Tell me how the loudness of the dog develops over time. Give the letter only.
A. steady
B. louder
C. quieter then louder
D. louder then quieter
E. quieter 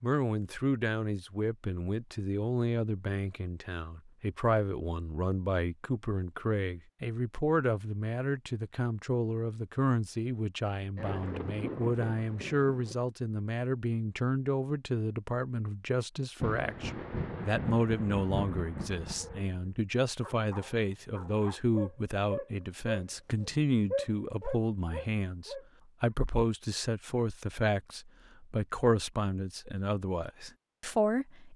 D.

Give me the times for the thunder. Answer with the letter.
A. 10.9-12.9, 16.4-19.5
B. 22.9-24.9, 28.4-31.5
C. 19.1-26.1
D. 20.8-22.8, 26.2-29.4
A.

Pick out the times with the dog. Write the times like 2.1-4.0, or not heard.
19.1-26.1.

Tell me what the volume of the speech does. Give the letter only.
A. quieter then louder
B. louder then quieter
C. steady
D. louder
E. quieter
C.